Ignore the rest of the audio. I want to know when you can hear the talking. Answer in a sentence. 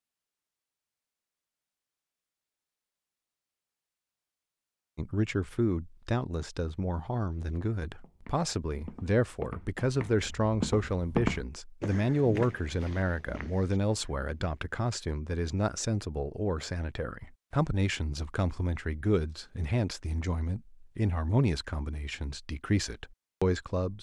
You can hear the talking from 5.0 to 23.9 s.